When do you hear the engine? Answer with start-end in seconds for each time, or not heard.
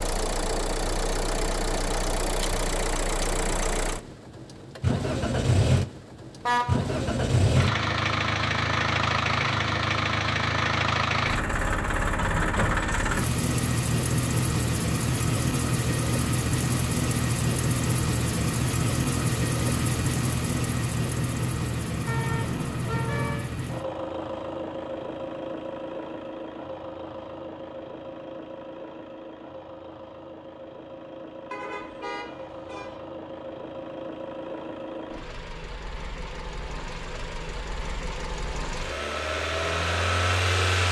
0.0-40.8.